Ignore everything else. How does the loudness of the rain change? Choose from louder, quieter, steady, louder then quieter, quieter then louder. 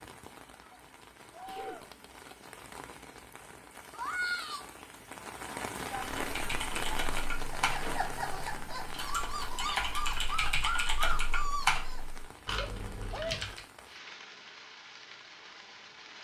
louder then quieter.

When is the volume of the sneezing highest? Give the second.
13 s.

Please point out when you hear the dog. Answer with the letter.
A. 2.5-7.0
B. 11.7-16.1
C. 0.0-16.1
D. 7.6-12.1
D.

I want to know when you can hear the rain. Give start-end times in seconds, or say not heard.
0.0-16.1.